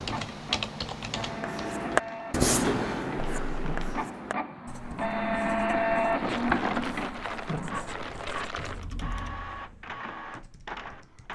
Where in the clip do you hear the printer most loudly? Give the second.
6 s.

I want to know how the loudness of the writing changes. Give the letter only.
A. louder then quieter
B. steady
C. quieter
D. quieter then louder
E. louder
C.